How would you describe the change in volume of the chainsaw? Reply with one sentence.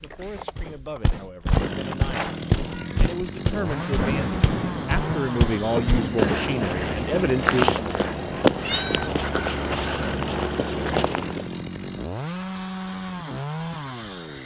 The volume of the chainsaw stays about the same.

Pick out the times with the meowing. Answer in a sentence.
The meowing can be heard from 2.1 to 3.1 s and from 8.6 to 9.2 s.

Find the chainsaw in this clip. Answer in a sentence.
The chainsaw can be heard from 0.0 to 14.4 s.